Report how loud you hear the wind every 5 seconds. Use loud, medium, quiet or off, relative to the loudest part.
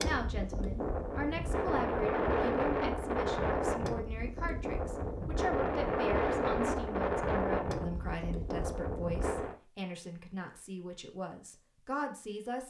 loud, loud, off.